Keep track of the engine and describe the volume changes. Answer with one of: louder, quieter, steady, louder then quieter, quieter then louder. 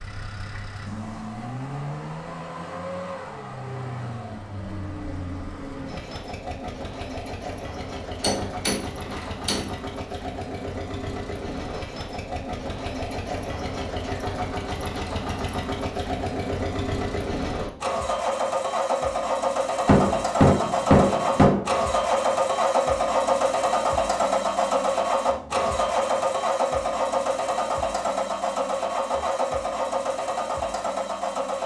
louder.